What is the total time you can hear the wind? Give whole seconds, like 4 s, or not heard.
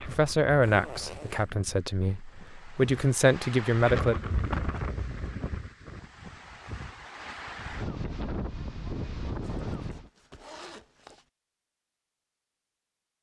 10 s.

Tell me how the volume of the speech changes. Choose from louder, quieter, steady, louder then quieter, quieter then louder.
quieter then louder.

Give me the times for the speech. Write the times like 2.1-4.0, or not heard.
0.0-4.2.